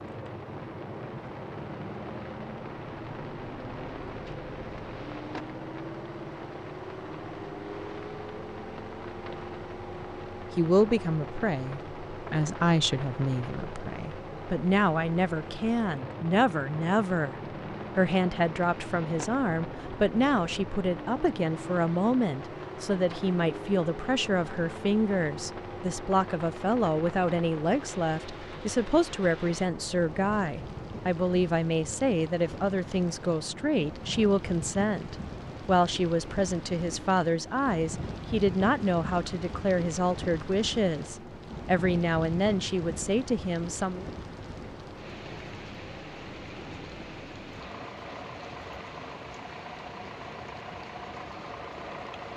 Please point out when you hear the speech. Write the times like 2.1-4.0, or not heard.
10.6-17.4, 17.9-44.0.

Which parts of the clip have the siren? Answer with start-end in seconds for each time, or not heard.
not heard.